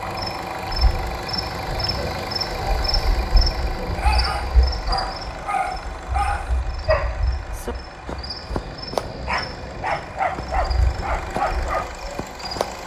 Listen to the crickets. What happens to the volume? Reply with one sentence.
The volume of the crickets goes down.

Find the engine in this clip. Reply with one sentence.
You can hear the engine from 0.0 to 12.8 s.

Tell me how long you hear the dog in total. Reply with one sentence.
The dog can be heard for 9 seconds in total.